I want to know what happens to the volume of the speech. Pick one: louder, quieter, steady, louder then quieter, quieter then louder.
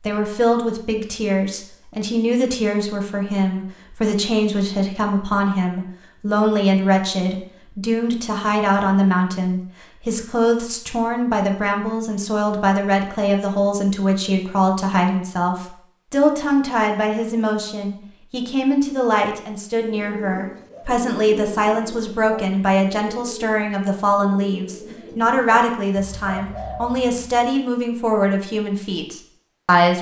steady.